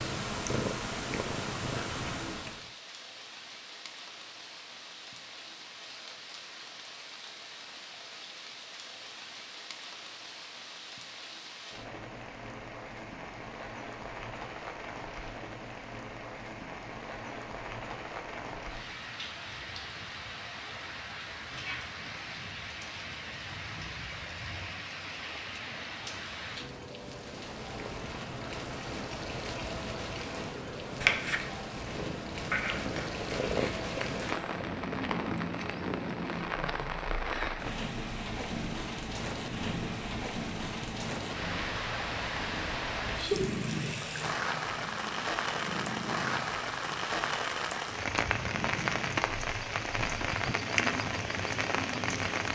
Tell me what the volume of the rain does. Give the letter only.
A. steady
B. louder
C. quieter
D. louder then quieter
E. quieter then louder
B.